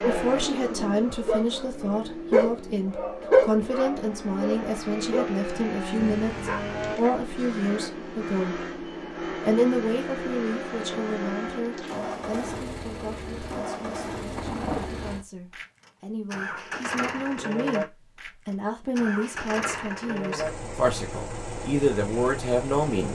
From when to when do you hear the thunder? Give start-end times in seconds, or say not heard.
14.3-14.9.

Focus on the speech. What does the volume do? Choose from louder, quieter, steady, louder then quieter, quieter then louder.
quieter then louder.